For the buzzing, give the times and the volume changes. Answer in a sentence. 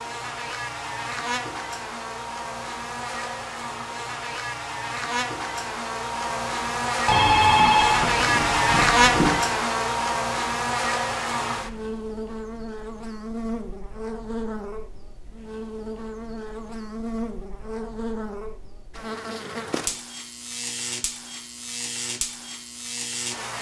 You can hear the buzzing from 0.0 to 23.5 s, getting louder then quieter.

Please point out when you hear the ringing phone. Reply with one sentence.
You can hear the ringing phone from 7.0 to 9.4 s.